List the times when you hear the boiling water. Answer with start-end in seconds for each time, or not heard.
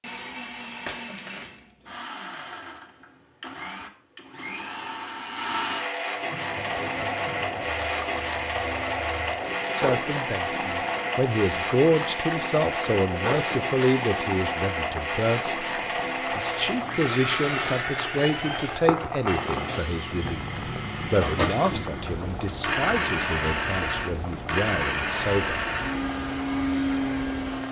6.2-27.6.